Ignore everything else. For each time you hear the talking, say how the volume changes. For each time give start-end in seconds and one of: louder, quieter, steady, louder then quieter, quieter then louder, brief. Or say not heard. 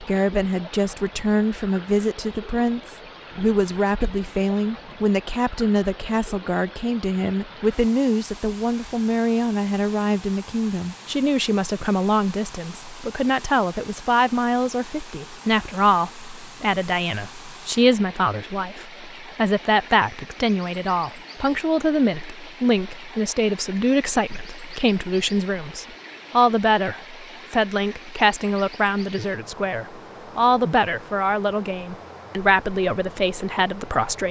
0.0-34.2 steady.